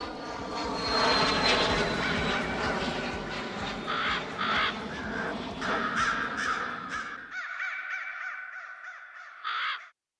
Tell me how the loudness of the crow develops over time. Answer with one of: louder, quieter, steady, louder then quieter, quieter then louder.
louder then quieter.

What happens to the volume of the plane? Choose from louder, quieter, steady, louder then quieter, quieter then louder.
quieter.